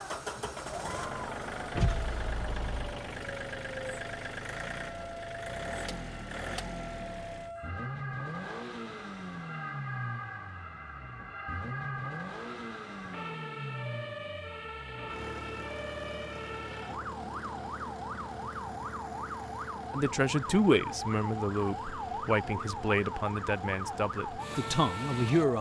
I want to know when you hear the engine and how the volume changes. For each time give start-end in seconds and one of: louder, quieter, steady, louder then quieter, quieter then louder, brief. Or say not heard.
0.0-25.5 quieter.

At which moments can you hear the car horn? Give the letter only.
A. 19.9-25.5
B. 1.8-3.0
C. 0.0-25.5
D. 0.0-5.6
B.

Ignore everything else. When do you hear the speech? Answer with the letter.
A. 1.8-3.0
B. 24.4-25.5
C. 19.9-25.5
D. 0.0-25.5
C.